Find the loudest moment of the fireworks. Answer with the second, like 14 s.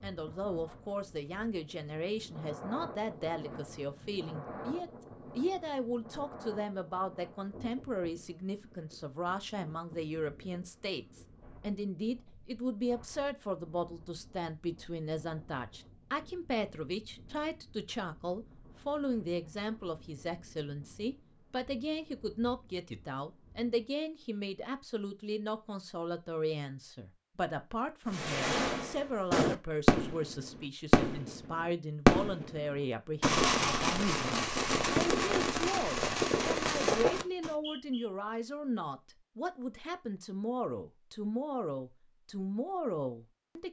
32 s.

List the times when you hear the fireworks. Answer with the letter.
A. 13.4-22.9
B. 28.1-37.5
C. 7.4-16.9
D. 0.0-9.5
B.